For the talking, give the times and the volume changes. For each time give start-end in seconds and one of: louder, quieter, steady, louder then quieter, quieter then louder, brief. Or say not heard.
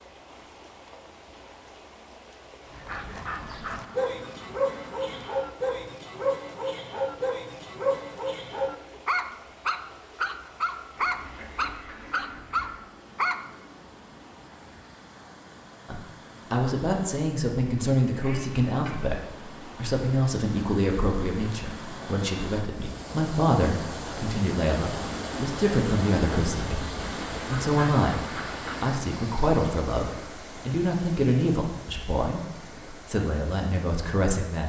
15.8-34.6 steady.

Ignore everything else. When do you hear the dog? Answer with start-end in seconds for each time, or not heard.
2.7-13.4.